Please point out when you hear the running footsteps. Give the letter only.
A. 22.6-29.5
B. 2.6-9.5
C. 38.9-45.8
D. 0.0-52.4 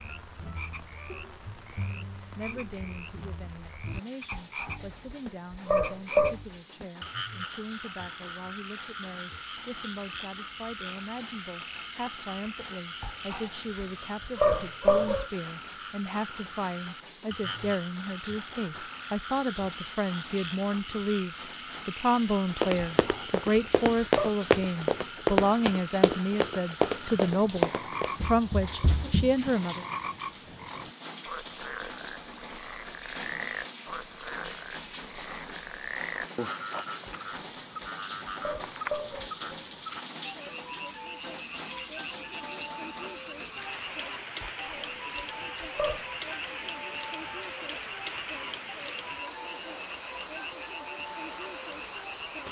A.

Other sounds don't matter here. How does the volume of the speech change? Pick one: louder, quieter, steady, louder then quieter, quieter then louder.
louder.